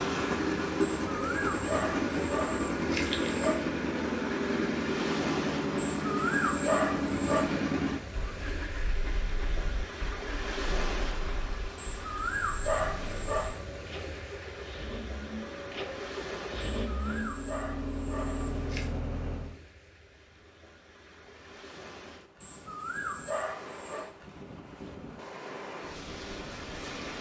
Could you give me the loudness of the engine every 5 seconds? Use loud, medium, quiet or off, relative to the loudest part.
loud, loud, quiet, medium, off, off.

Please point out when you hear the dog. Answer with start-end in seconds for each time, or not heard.
1.1-3.6, 6.0-7.5, 11.8-13.6, 16.8-18.9, 22.4-24.1.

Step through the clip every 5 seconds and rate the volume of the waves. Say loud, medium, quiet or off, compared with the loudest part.
loud, loud, loud, medium, medium, loud.